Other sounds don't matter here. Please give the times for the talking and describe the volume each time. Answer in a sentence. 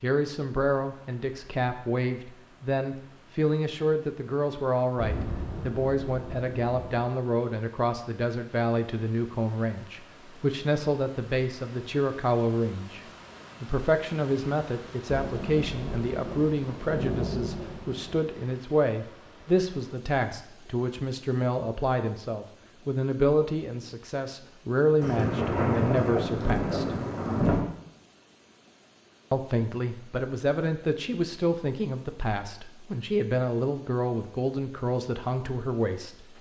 You can hear the talking from 0.0 to 26.9 s, at a steady volume; and from 29.3 to 36.3 s, at a steady volume.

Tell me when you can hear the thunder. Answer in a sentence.
The thunder can be heard from 5.0 to 7.0 s, from 15.1 to 18.2 s and from 25.0 to 27.6 s.